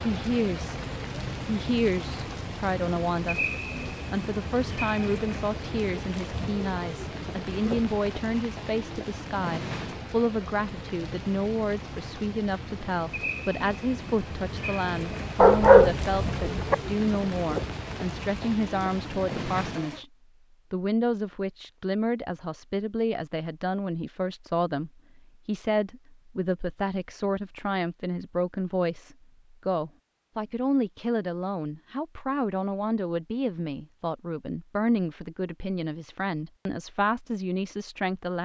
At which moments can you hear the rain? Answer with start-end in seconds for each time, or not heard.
0.0-20.1.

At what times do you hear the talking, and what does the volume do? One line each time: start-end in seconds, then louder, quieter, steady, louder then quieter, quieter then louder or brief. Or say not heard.
0.0-0.8 brief
1.4-20.1 steady
20.7-38.4 steady.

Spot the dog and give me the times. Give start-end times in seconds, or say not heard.
15.4-16.8.